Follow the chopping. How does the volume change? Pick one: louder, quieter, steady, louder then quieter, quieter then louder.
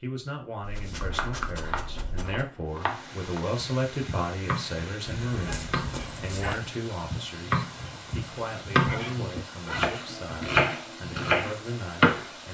louder.